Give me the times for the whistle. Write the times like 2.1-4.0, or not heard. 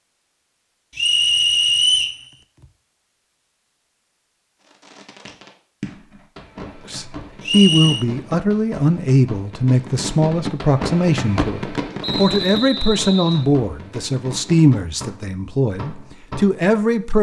0.9-2.2, 7.4-8.1, 12.0-13.5.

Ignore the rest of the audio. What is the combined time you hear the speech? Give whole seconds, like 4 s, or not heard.
10 s.